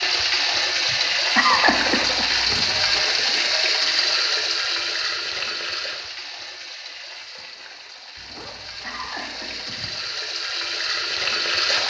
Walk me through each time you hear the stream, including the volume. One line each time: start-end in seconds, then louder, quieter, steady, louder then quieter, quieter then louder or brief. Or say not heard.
0.0-11.8 quieter then louder.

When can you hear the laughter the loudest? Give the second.
2 s.